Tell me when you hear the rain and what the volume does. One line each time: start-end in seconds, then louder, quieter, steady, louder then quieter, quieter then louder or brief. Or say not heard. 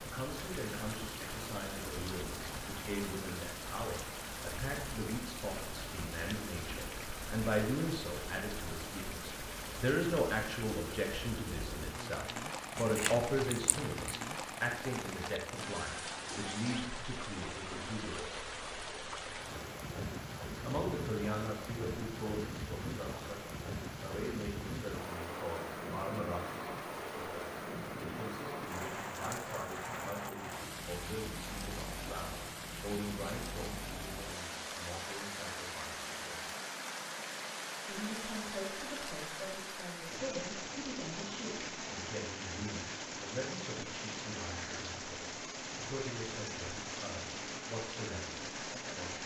0.0-49.2 steady.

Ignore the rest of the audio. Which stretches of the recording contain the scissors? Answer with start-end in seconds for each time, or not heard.
12.8-14.2.